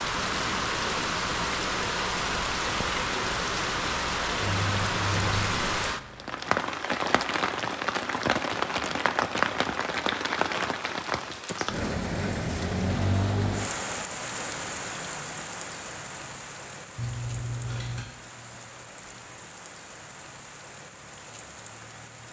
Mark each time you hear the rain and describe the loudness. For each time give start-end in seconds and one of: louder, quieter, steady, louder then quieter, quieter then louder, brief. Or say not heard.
0.0-22.2 quieter.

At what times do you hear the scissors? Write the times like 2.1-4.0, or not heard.
4.4-5.7, 16.9-18.1.